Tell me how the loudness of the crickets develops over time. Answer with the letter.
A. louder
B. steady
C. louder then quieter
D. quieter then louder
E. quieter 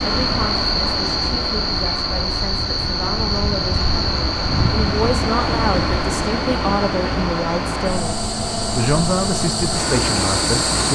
D.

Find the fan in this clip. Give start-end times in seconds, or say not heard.
0.0-10.9.